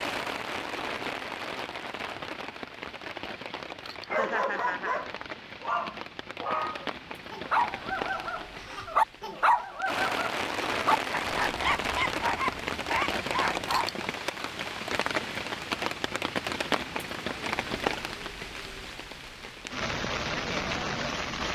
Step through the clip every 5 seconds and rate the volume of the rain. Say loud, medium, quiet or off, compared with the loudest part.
medium, medium, loud, loud, loud.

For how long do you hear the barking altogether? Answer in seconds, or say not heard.
10 s.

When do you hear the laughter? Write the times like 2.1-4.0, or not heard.
4.2-5.0.